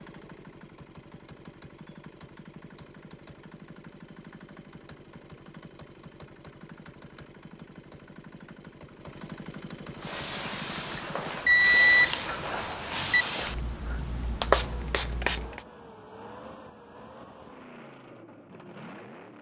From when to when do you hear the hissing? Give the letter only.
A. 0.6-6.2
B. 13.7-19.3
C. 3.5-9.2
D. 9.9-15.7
D.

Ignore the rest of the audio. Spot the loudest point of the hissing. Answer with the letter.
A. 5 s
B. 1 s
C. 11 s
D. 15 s
D.